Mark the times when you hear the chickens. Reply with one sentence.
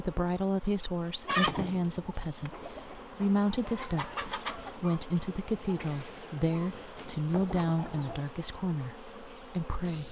You can hear the chickens from 1.2 to 8.2 s.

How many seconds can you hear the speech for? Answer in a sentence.
You can hear the speech for 10 seconds altogether.